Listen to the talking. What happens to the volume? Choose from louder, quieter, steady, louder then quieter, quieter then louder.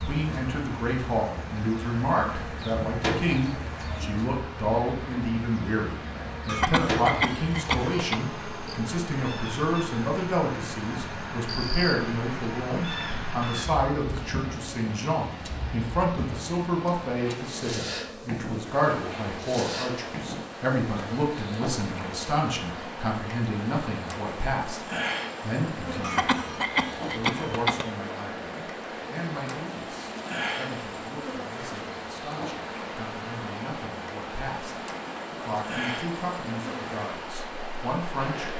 quieter.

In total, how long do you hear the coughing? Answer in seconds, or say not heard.
4 s.